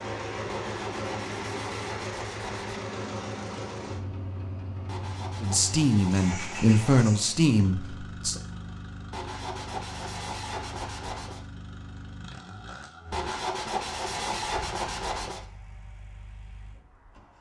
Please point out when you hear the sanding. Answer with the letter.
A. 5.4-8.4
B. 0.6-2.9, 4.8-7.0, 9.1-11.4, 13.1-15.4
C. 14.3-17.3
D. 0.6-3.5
B.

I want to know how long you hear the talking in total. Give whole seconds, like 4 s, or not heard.
3 s.